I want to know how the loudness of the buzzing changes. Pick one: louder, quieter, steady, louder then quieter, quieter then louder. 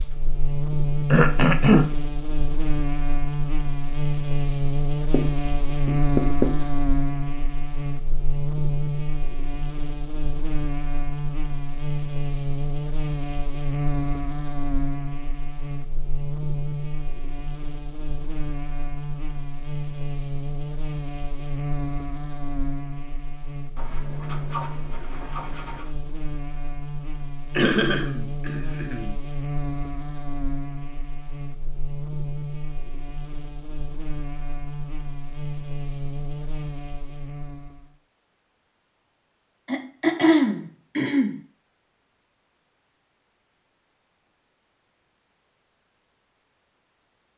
quieter.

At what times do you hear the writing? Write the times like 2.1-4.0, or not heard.
5.1-6.8, 23.8-25.9.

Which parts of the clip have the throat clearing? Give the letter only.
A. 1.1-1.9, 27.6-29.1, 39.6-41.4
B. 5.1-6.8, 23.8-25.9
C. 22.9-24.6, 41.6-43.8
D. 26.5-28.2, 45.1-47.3
A.